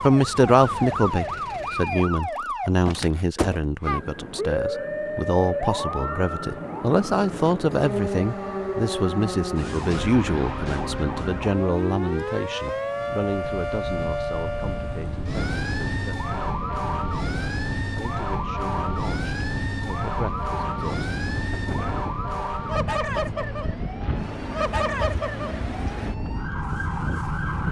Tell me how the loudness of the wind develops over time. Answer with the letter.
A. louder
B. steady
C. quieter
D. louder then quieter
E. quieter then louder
B.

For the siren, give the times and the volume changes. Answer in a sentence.
You can hear the siren from 0.0 to 27.6 s, at a steady volume.